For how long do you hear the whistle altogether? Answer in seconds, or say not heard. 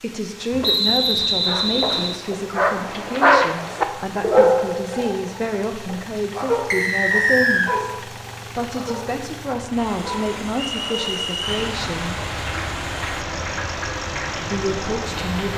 4 s.